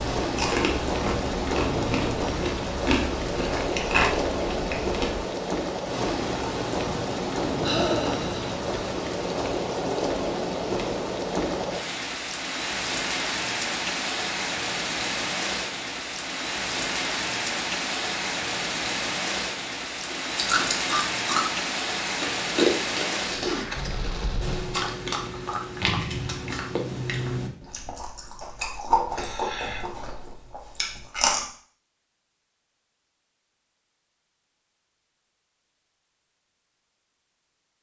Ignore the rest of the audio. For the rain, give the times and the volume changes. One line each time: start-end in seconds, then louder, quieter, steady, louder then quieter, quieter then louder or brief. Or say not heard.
0.0-24.8 steady.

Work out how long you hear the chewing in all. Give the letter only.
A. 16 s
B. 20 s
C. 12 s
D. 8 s
A.